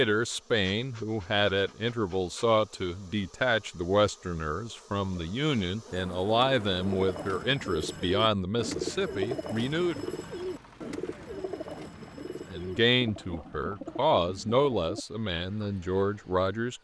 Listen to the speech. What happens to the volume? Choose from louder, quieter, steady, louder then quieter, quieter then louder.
steady.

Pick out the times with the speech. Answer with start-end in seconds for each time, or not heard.
0.0-10.1, 12.4-16.7.